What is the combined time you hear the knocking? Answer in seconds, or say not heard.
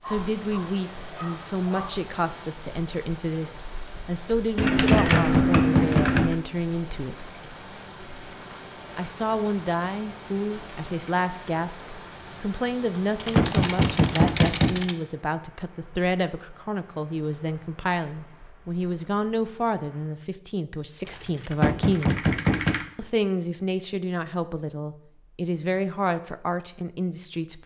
4 s.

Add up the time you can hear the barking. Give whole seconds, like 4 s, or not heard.
2 s.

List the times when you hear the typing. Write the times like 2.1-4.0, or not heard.
4.5-6.3, 13.2-14.9, 21.1-22.9.